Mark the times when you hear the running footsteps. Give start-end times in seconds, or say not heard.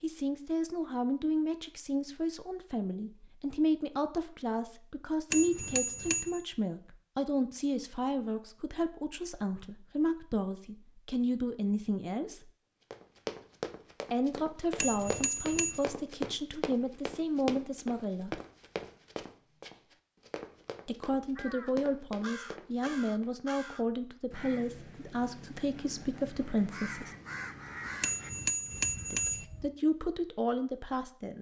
12.9-23.4.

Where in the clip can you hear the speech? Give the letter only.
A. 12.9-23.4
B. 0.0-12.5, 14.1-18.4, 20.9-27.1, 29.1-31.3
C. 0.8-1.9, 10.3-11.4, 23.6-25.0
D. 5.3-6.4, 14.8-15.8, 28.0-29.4
B.